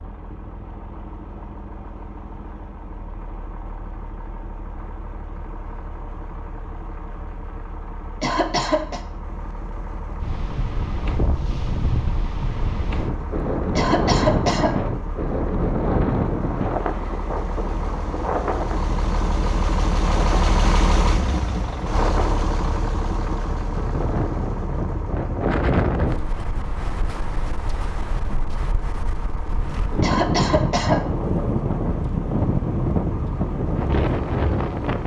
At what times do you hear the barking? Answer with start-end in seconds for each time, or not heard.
not heard.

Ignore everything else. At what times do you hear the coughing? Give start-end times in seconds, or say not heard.
8.2-9.0, 13.8-14.8, 30.0-31.1.